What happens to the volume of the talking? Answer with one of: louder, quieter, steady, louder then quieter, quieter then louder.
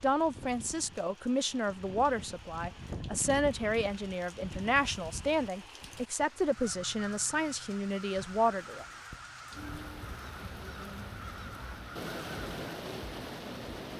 steady.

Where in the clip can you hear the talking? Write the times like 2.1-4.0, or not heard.
0.0-8.8.